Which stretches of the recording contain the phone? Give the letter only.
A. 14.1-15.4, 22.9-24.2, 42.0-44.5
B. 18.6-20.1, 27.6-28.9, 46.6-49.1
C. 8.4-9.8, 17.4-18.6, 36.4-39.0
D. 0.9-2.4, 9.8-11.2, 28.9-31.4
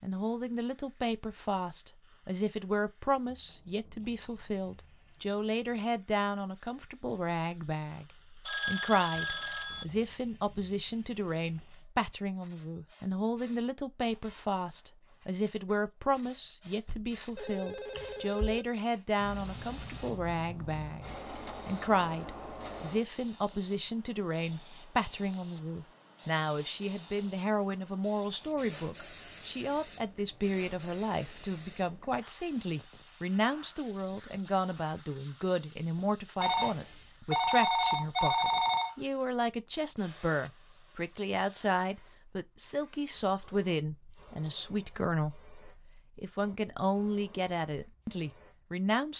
C.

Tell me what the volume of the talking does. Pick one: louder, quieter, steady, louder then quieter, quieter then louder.
steady.